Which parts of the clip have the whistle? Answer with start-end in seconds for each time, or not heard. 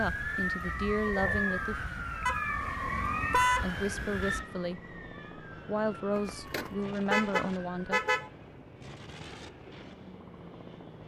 not heard.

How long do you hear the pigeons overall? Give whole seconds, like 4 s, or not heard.
not heard.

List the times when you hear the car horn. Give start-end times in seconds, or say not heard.
2.2-3.6, 6.2-8.2.